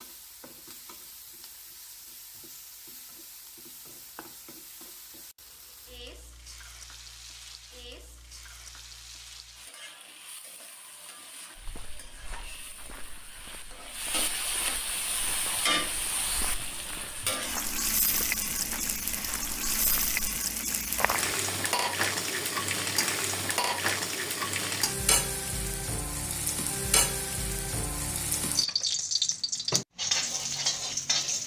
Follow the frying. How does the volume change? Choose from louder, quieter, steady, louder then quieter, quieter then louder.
louder.